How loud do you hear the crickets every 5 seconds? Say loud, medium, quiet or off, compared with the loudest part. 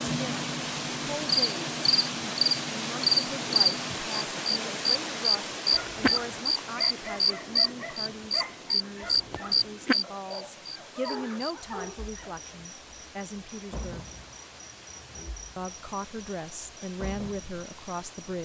loud, loud, quiet, quiet.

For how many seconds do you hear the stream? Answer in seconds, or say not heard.
18 s.